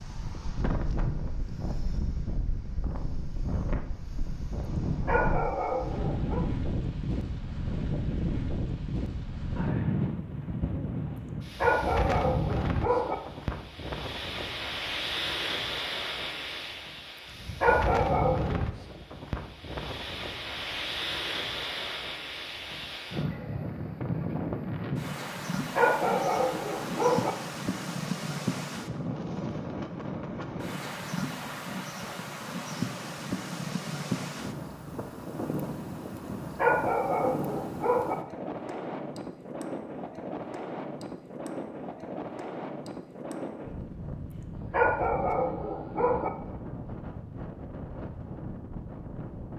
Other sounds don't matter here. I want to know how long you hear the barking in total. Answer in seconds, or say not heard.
9 s.